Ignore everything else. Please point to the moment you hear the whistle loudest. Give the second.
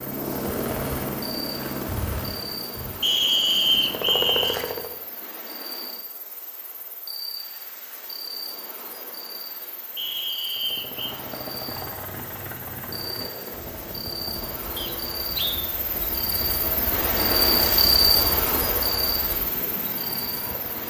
4 s.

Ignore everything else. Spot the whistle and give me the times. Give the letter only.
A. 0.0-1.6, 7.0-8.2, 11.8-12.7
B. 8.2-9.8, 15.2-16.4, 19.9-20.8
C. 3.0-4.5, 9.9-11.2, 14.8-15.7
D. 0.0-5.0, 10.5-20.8
C.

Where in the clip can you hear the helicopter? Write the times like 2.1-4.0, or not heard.
0.0-5.0, 10.5-20.8.